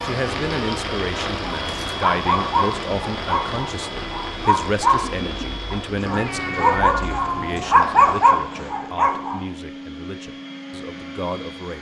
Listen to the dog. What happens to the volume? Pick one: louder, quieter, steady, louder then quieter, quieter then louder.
quieter then louder.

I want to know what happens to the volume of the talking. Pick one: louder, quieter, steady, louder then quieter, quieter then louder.
quieter.